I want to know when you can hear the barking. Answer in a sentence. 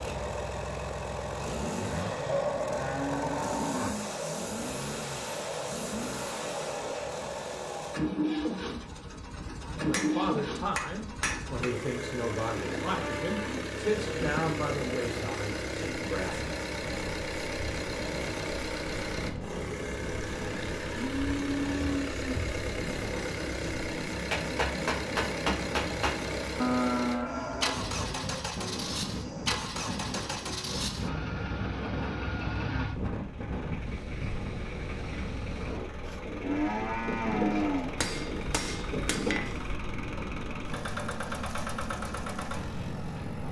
The barking can't be heard in this clip.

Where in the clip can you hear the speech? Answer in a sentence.
The speech can be heard from 9.8 to 16.5 s.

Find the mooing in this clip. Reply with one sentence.
The mooing can be heard from 1.8 to 4.0 s, from 12.6 to 14.5 s, from 20.9 to 22.6 s, from 26.6 to 28.4 s and from 36.0 to 38.1 s.